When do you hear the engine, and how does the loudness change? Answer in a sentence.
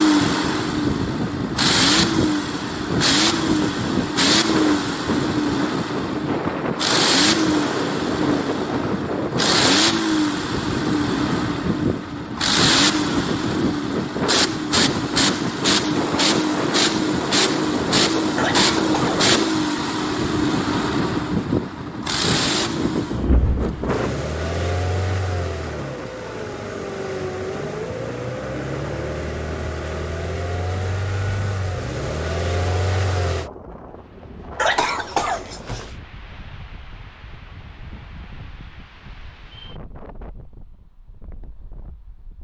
You can hear the engine from 0.0 to 33.5 s, getting quieter.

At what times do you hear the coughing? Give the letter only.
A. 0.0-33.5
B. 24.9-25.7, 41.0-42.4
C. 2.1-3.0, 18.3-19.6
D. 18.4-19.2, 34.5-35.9
D.